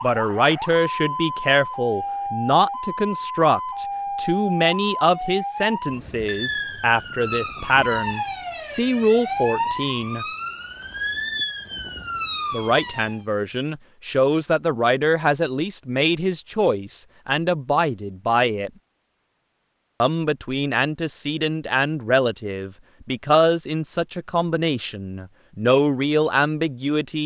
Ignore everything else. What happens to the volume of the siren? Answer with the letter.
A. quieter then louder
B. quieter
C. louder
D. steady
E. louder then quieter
D.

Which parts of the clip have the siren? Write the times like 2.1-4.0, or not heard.
0.0-13.2.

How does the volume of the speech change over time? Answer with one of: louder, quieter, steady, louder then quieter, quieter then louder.
steady.